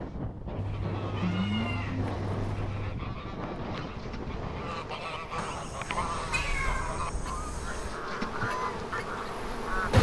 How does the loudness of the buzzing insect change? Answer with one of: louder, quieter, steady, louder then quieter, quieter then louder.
louder.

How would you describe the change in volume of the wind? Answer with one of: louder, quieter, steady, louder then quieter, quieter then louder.
quieter.